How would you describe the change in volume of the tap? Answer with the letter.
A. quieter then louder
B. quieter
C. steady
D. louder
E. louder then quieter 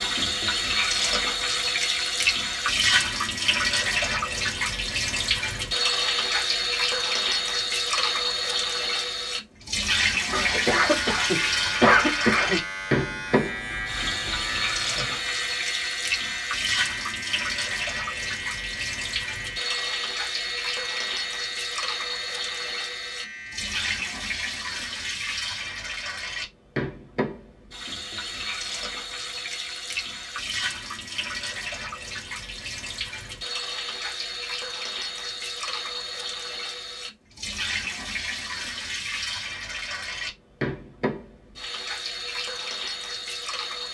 B.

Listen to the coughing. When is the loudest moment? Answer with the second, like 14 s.
12 s.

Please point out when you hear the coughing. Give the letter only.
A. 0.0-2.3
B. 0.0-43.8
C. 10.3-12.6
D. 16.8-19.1
C.